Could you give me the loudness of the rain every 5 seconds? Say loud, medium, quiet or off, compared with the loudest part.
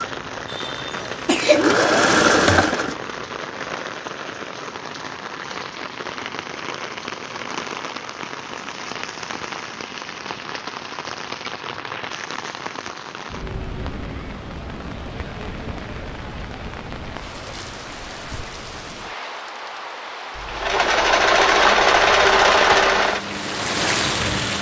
medium, medium, medium, medium, loud.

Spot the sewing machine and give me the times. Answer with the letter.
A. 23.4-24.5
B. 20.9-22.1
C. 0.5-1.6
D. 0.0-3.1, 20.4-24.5
D.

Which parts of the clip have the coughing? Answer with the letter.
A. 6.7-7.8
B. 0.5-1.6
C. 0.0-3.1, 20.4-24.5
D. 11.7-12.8
B.